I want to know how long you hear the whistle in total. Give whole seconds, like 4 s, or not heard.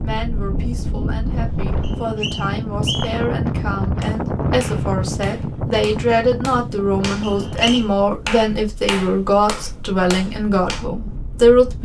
2 s.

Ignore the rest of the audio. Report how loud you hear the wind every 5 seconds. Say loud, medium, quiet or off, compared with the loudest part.
loud, medium, quiet.